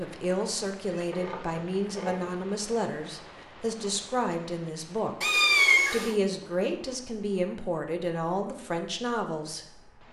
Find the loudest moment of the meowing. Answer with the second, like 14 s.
6 s.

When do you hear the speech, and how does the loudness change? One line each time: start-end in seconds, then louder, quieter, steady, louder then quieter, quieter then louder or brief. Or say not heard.
0.0-9.9 steady.